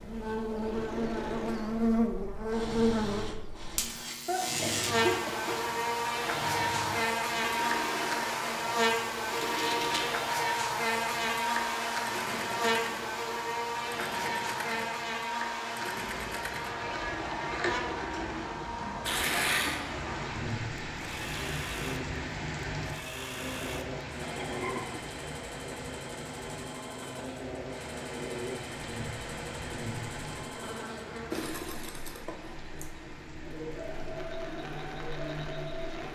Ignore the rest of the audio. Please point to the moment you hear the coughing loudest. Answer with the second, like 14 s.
5 s.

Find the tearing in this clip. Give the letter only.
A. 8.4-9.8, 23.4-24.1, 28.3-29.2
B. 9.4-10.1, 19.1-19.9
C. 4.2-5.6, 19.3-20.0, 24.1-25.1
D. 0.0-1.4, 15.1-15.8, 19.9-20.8
B.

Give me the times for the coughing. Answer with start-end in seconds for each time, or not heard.
4.2-5.6, 19.3-20.0, 24.1-25.1.